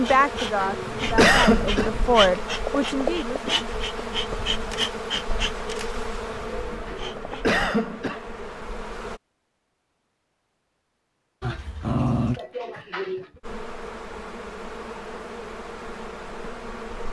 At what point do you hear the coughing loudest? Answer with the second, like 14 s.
1 s.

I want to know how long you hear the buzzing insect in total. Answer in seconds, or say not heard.
13 s.